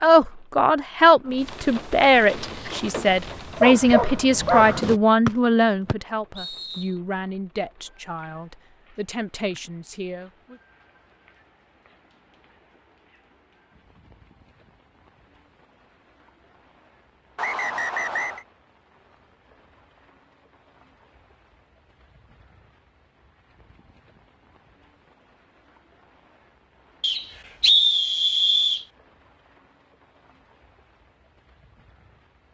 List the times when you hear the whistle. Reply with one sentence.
The whistle can be heard from 5.2 to 6.8 s, from 17.4 to 18.4 s and from 27.0 to 28.9 s.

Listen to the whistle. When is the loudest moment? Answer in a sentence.
The loudest moment of the whistle is at 28 seconds.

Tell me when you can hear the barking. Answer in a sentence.
You can hear the barking from 2.2 to 5.0 s.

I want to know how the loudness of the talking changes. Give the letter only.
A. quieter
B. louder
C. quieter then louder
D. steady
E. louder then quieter
A.